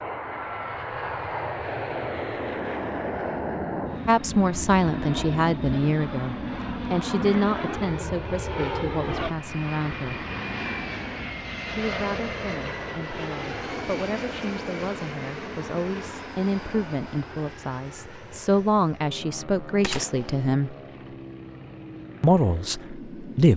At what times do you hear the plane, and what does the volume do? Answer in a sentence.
You can hear the plane from 0.0 to 23.5 s, getting quieter.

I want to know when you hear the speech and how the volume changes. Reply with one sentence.
You can hear the speech from 4.0 to 10.2 s, getting quieter; from 11.7 to 20.8 s, getting louder; and briefly from 22.2 to 23.5 s.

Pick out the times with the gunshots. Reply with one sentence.
The gunshots can be heard from 19.8 to 20.4 s.